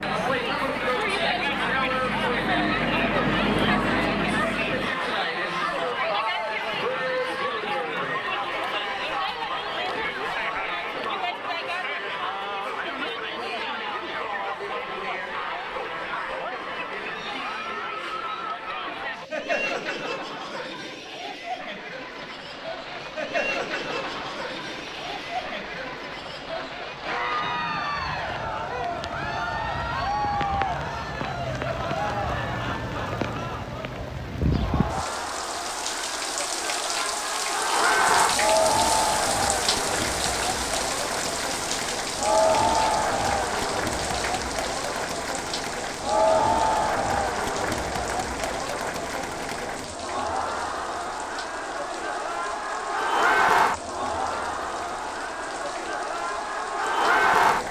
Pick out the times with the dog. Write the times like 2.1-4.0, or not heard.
not heard.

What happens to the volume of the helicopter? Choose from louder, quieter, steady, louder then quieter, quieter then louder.
louder.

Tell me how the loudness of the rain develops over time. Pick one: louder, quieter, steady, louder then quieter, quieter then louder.
louder then quieter.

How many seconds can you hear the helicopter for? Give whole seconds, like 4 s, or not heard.
5 s.